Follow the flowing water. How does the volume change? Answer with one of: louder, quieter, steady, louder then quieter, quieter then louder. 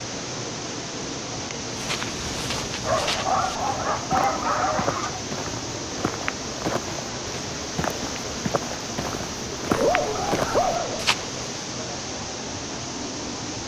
steady.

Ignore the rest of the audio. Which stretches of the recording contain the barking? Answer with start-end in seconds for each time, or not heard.
2.8-5.2, 9.7-11.1.